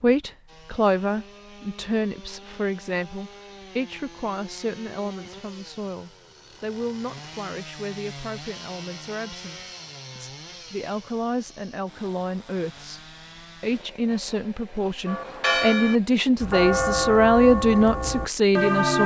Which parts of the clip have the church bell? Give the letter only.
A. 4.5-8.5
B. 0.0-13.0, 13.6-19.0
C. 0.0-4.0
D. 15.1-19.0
D.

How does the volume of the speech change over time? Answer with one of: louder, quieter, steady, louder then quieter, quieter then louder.
quieter then louder.